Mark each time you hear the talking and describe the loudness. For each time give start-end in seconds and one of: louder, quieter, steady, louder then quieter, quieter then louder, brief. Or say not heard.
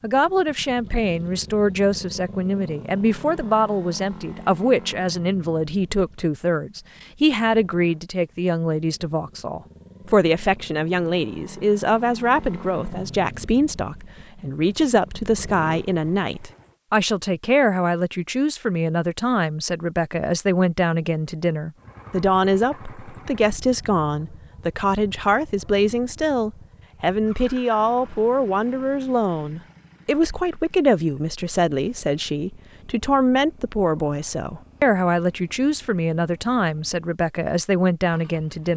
0.0-38.7 steady.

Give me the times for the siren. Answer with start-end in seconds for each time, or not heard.
not heard.